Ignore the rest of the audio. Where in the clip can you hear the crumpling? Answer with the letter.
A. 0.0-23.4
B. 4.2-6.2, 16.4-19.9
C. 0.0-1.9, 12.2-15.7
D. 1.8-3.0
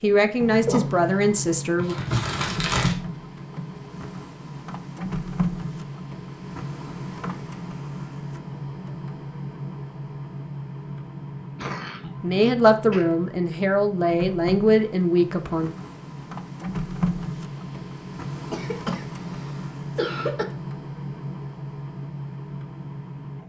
D.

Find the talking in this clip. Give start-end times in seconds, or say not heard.
0.0-1.9, 12.2-15.7.